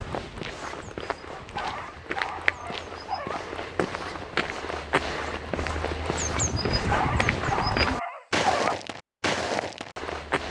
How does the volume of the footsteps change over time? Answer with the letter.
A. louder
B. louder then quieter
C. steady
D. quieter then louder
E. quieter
A.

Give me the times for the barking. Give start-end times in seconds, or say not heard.
1.4-3.4, 6.7-8.8.